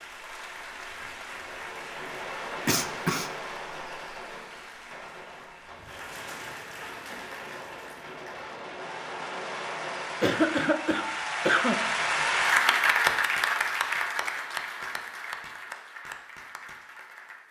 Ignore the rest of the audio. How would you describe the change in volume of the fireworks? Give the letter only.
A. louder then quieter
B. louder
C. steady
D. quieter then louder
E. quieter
D.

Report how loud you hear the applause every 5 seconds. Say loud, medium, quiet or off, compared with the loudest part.
quiet, quiet, loud, quiet.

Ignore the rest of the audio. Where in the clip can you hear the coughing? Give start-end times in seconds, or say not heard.
2.6-3.3, 10.2-11.8.